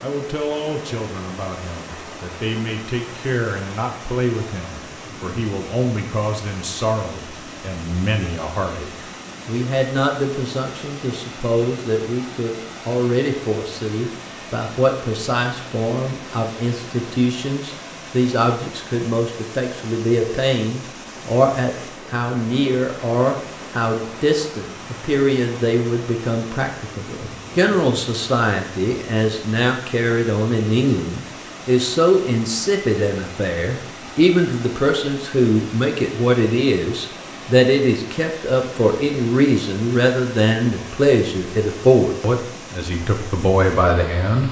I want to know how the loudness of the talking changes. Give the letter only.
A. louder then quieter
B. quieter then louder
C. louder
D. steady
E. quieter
C.